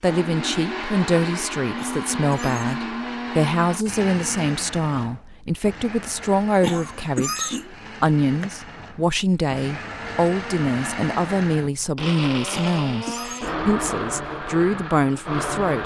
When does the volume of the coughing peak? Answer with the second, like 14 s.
7 s.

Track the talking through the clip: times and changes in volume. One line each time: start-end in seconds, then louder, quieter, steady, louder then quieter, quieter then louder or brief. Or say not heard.
0.0-15.8 steady.